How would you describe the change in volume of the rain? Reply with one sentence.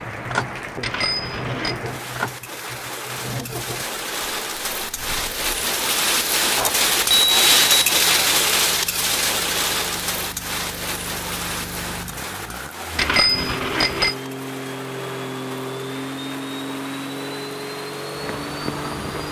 The loudness of the rain goes up, then down.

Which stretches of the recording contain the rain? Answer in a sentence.
The rain can be heard from 0.0 to 19.2 s.